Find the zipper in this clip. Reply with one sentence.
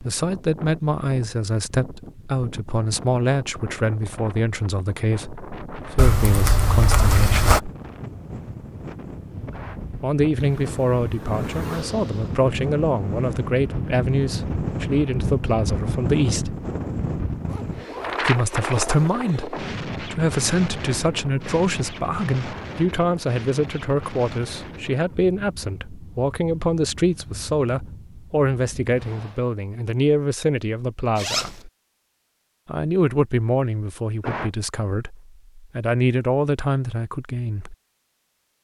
You can hear the zipper from 6.0 to 7.6 s, from 17.4 to 19.5 s and from 31.1 to 31.6 s.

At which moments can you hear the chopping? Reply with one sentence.
The chopping can't be heard in this clip.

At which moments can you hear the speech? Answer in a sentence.
You can hear the speech from 0.0 to 7.7 s, from 9.9 to 16.6 s, from 18.2 to 31.7 s and from 32.6 to 37.8 s.